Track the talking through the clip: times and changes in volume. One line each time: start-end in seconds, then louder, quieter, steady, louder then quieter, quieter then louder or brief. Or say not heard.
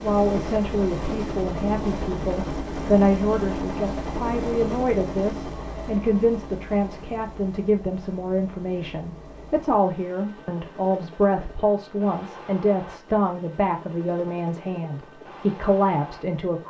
0.0-16.6 steady.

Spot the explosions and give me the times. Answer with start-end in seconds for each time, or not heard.
not heard.